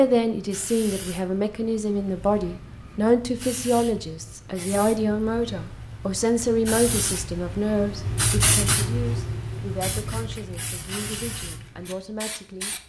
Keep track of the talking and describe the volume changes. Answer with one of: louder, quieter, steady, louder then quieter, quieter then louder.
quieter.